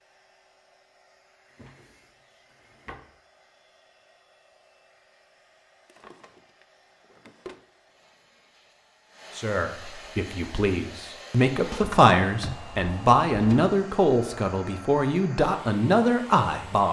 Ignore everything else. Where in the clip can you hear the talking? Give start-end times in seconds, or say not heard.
9.3-16.8.